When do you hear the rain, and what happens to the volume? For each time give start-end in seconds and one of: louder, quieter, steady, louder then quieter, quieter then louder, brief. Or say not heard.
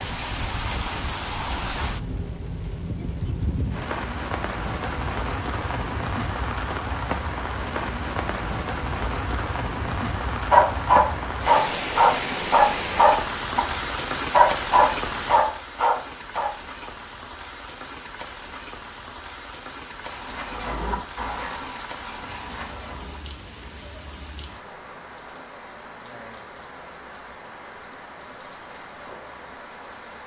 0.0-30.2 quieter.